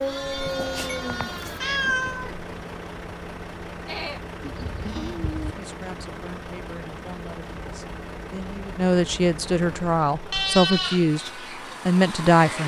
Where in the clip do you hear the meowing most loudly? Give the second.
2 s.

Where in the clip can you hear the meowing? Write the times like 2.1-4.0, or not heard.
0.5-2.4.